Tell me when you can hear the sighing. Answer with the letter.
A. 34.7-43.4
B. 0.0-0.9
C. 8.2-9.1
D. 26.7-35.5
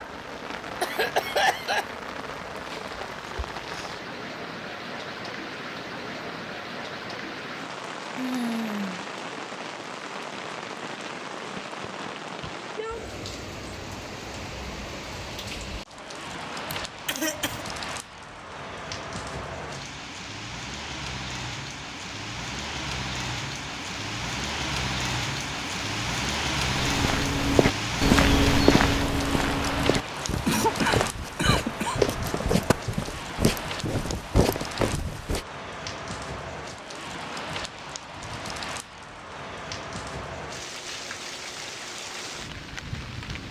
C.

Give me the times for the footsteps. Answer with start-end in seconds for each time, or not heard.
26.7-35.5.